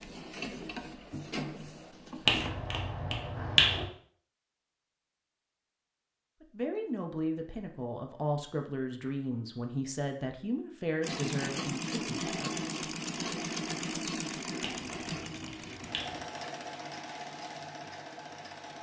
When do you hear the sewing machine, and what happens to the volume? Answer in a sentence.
The sewing machine can be heard briefly from 0.0 to 2.5 s; and from 11.0 to 18.7 s, getting quieter.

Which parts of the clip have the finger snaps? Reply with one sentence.
You can hear the finger snaps from 2.2 to 3.9 s and from 14.6 to 16.2 s.